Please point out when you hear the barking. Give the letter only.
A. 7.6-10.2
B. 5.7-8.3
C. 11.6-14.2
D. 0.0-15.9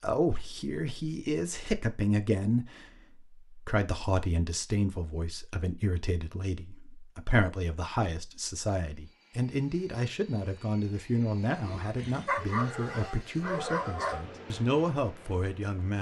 C.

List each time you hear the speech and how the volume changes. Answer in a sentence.
The speech can be heard from 0.0 to 15.9 s, at a steady volume.